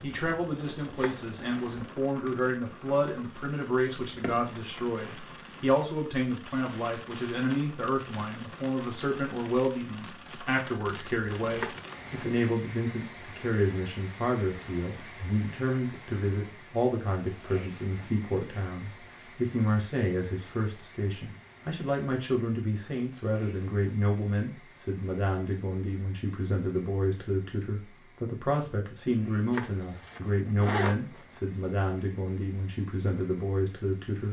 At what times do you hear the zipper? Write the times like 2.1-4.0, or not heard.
0.9-1.6, 11.6-12.4, 29.5-31.4.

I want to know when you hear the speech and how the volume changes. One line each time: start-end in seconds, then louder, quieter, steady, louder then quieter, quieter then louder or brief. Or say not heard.
0.0-34.2 steady.